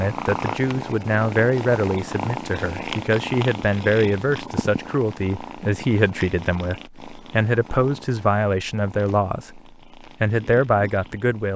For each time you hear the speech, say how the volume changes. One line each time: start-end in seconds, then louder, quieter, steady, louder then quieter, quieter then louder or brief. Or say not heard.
0.0-11.5 steady.